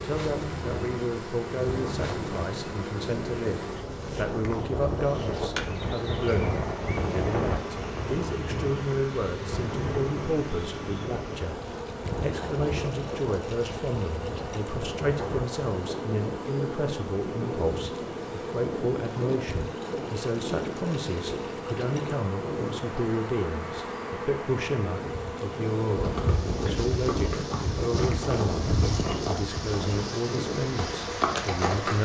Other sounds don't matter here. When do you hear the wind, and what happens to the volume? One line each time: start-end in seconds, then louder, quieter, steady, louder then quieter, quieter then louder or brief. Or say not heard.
0.0-32.0 steady.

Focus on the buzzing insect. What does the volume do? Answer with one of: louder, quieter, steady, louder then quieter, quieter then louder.
steady.